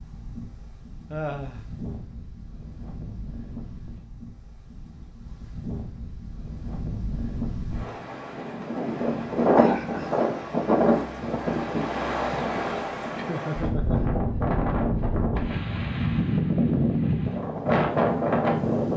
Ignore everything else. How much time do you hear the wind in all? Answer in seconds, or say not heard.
19 s.